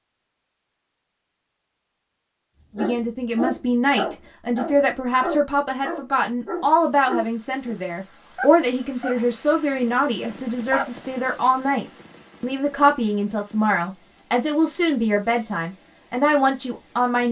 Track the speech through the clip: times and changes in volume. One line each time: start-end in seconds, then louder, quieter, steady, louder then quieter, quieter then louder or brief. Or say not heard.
2.8-17.2 steady.